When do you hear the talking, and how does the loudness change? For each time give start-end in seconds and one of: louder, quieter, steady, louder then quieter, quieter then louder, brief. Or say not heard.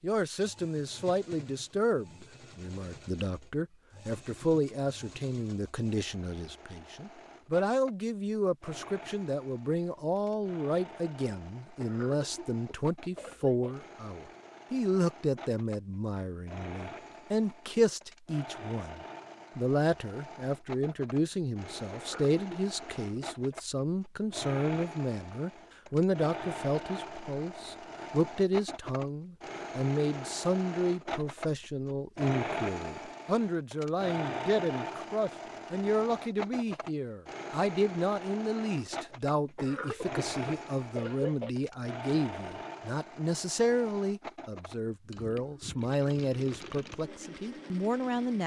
0.0-48.4 steady.